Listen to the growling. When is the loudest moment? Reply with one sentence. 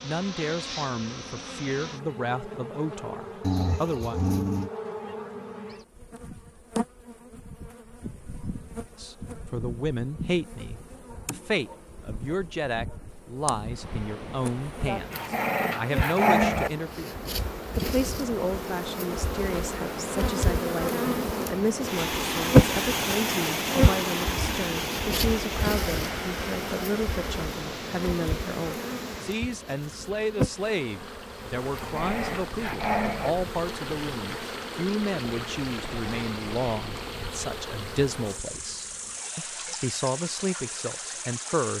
The loudest moment of the growling is at 16 seconds.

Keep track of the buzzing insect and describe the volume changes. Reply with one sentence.
The volume of the buzzing insect goes up, then down.